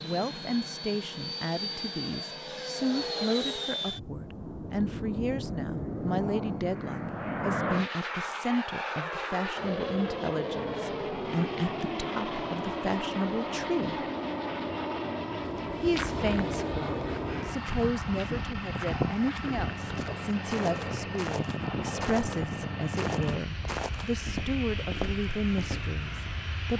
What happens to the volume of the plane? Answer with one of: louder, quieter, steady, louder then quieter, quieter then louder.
steady.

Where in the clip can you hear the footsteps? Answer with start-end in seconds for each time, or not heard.
15.4-26.4.